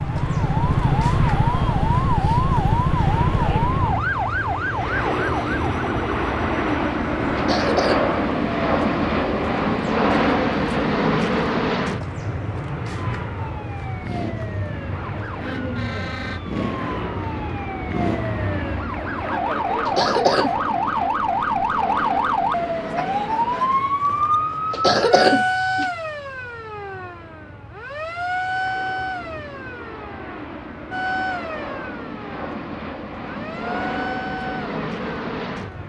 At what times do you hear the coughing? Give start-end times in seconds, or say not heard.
7.3-8.1, 19.9-20.5, 24.7-25.9.